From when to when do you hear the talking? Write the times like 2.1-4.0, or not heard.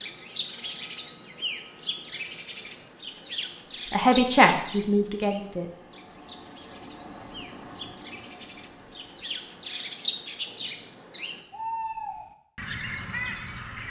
3.9-5.7.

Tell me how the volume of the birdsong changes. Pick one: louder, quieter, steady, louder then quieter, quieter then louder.
quieter then louder.